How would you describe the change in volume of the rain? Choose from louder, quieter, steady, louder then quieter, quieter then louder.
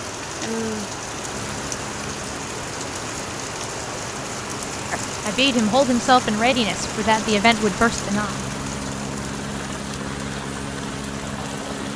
quieter.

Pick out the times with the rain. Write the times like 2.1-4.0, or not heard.
0.0-11.9.